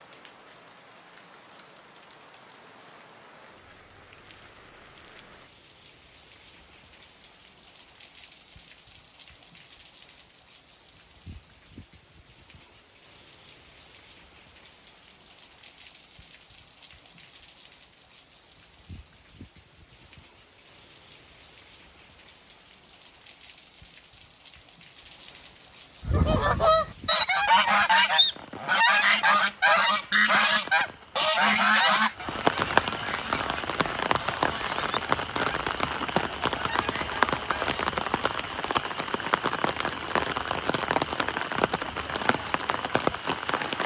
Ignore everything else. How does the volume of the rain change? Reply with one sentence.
The loudness of the rain goes up.